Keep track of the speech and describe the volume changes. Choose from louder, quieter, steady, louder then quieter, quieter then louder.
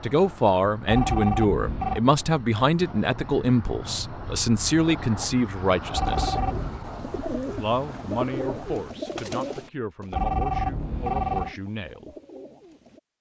quieter.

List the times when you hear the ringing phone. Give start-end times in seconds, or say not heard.
0.8-2.0, 5.9-6.8, 10.1-11.6.